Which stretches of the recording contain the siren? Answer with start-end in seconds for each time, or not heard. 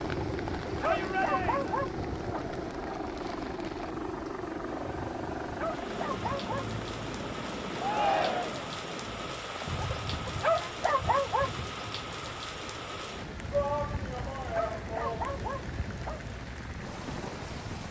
not heard.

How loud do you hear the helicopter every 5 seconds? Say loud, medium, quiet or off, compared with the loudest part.
loud, loud, medium, medium.